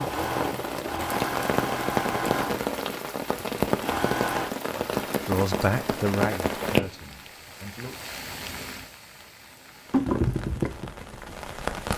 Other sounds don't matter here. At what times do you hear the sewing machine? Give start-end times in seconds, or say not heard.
0.0-4.5.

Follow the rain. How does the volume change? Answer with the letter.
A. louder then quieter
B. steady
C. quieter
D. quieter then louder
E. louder
D.